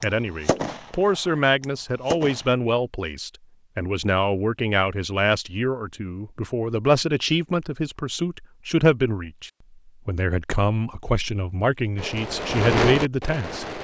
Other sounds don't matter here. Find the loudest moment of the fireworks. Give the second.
13 s.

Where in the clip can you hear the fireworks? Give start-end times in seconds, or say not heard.
0.0-2.5, 11.9-13.7.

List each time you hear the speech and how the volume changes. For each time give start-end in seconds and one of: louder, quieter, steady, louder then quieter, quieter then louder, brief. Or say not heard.
0.0-13.7 steady.